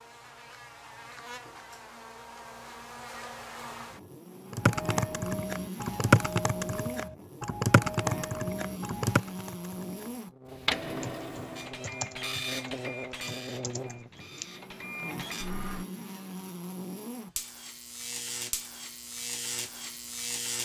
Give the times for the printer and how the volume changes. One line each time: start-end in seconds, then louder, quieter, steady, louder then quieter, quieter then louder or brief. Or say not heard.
10.4-15.8 quieter then louder.